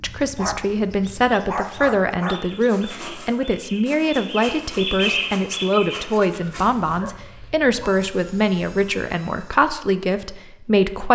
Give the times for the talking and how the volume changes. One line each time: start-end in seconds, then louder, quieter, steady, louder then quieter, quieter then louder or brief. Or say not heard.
0.0-11.0 steady.